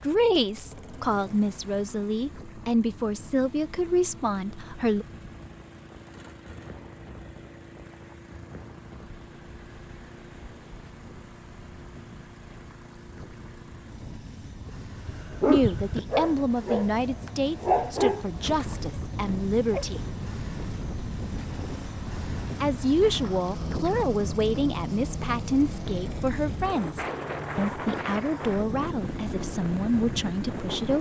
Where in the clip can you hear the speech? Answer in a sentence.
You can hear the speech from 0.0 to 5.0 s, from 15.4 to 20.1 s and from 22.6 to 30.9 s.